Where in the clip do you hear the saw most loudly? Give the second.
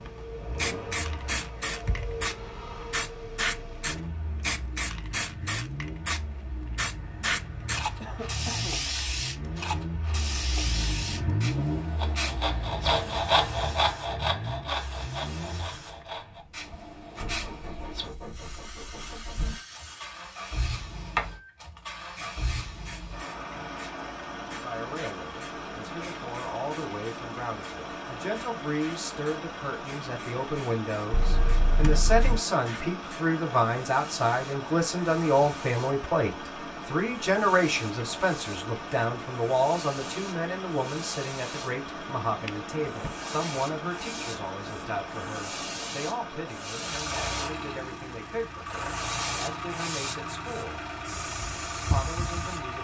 13 s.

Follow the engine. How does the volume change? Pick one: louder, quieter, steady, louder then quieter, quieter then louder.
steady.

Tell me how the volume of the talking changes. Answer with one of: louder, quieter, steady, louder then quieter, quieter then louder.
louder then quieter.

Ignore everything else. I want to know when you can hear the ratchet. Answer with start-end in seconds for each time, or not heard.
not heard.